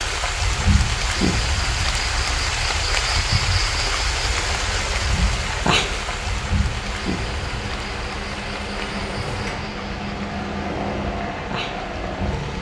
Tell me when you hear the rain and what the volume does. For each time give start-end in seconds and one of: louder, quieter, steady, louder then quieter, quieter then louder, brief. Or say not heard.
0.0-12.5 quieter.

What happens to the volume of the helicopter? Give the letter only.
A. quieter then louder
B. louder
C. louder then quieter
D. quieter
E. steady
B.